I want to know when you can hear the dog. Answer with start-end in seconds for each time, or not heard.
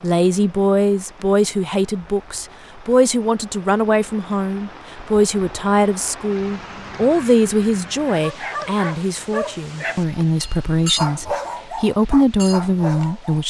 7.9-13.4.